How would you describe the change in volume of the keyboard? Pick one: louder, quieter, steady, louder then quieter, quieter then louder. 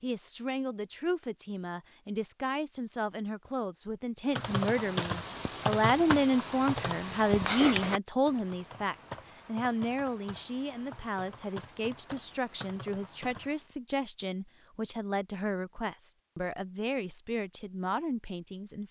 quieter.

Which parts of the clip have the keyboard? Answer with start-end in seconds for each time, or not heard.
4.3-13.8.